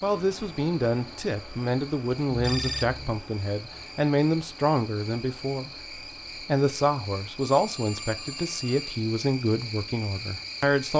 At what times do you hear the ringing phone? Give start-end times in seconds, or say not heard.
2.3-3.2, 7.5-9.0.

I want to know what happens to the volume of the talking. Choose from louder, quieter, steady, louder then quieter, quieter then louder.
steady.